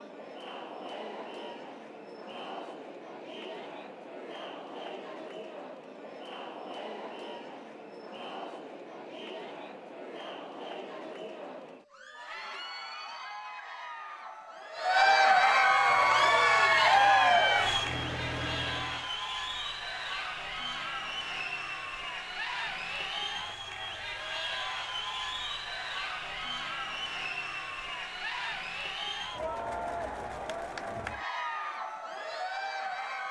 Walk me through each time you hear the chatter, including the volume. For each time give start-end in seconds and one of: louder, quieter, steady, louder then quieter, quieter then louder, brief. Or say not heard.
0.0-33.2 louder then quieter.